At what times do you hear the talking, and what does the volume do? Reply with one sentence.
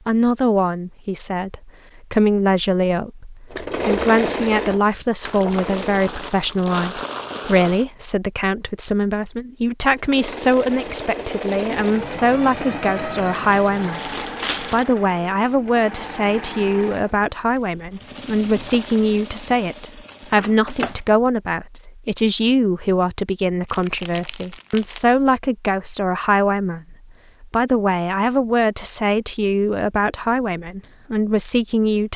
The talking can be heard from 0.1 to 32.1 s, at a steady volume.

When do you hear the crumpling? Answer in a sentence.
You can hear the crumpling from 5.2 to 7.8 s, from 13.3 to 14.8 s and from 23.6 to 25.0 s.